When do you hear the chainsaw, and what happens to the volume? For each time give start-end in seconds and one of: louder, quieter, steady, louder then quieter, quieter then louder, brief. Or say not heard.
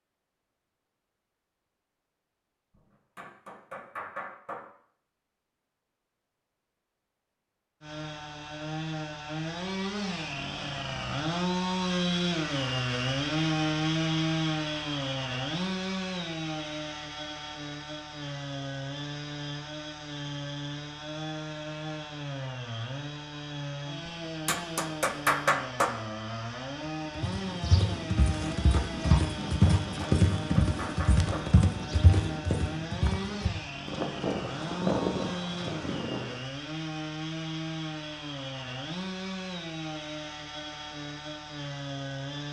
7.8-42.4 quieter.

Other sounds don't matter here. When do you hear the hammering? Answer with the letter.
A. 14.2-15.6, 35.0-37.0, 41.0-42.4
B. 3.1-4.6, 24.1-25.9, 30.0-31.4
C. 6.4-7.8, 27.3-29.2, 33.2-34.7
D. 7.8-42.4
B.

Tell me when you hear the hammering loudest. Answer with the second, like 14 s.
25 s.